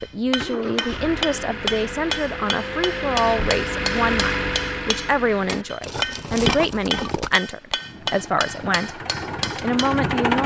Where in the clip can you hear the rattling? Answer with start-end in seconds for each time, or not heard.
5.8-7.4.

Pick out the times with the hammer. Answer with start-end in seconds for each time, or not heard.
0.0-9.9.